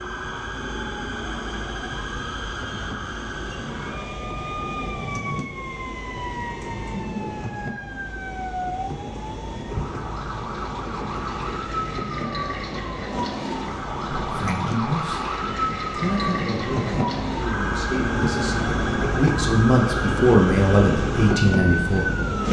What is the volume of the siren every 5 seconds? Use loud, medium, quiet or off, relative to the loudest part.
medium, medium, loud, loud, loud.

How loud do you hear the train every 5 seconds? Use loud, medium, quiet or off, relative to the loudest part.
medium, medium, medium, loud, loud.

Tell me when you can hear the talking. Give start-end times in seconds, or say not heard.
14.2-15.2, 16.0-22.1.